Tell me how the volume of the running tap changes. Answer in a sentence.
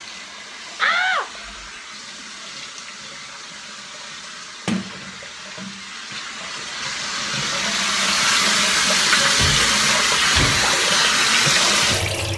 The loudness of the running tap goes up.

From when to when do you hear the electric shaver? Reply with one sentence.
You can't hear the electric shaver here.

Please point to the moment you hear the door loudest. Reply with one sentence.
The volume of the door peaks at 1 second.